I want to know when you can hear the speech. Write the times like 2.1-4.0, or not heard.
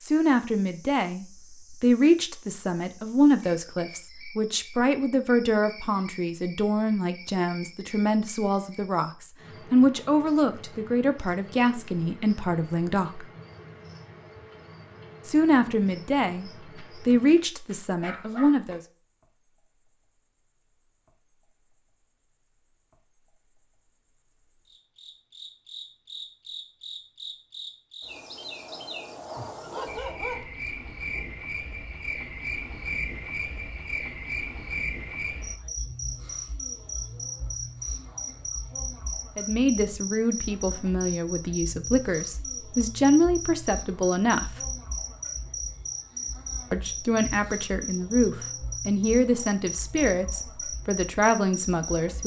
0.0-13.2, 15.2-18.8, 39.4-44.6, 46.7-52.2.